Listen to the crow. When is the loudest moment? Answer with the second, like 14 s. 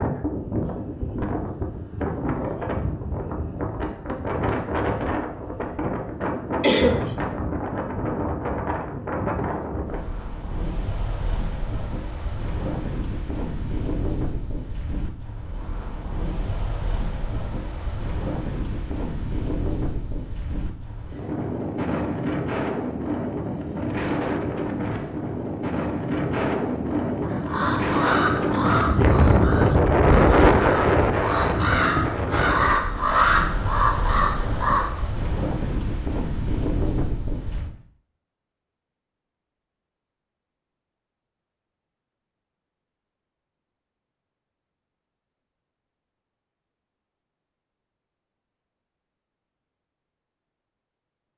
33 s.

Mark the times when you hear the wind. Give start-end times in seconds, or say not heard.
0.0-37.7.